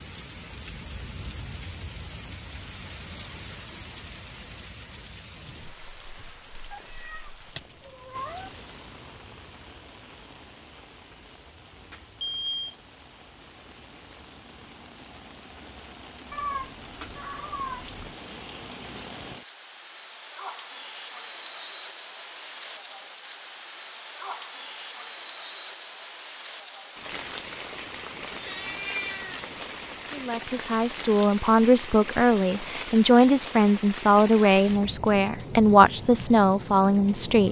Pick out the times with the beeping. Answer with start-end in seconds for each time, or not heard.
11.9-12.8.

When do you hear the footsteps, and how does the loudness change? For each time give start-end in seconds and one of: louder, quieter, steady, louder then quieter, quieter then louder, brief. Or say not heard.
not heard.